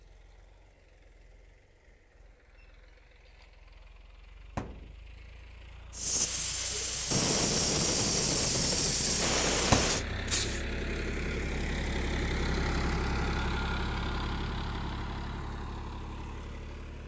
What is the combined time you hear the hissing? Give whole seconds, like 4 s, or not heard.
5 s.